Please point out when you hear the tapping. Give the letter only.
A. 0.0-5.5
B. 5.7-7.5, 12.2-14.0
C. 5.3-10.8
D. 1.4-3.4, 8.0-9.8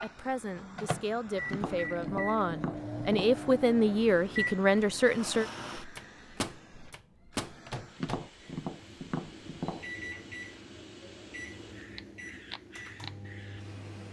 D.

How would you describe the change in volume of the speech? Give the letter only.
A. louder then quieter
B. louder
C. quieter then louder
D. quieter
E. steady
B.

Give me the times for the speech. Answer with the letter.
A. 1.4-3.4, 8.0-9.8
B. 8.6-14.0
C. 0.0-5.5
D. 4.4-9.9
C.